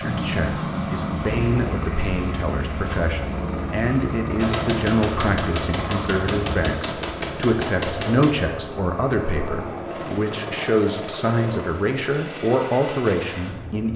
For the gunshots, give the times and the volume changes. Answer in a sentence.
You can hear the gunshots from 4.3 to 8.3 s, at a steady volume.